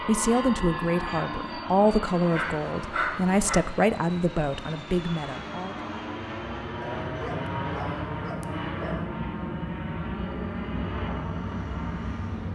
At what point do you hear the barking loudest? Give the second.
3 s.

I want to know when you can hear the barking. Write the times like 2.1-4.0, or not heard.
2.3-3.6, 6.8-9.1.